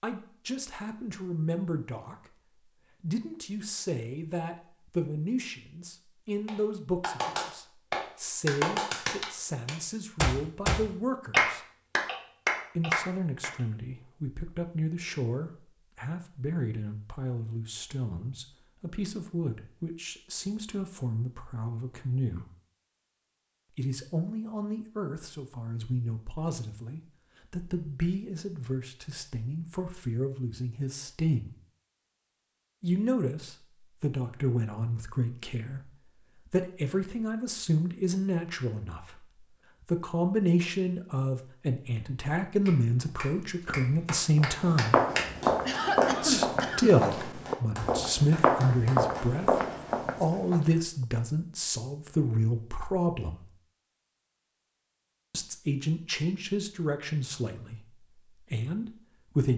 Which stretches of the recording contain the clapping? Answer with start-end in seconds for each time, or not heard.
6.5-13.5, 42.6-49.3.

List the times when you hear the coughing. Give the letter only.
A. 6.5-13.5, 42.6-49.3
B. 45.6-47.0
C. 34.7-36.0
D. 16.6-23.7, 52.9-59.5
B.